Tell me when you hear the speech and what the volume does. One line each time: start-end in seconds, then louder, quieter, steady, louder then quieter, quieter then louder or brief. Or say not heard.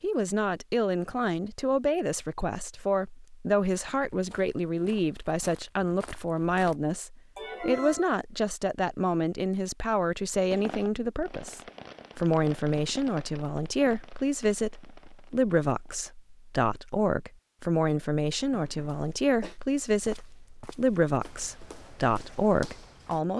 0.0-23.3 steady.